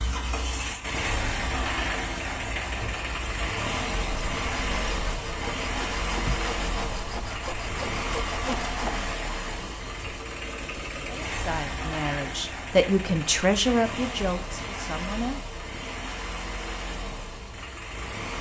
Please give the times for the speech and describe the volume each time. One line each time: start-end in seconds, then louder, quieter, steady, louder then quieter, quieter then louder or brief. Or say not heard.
11.1-15.4 louder then quieter.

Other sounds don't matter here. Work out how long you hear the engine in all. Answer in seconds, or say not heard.
18 s.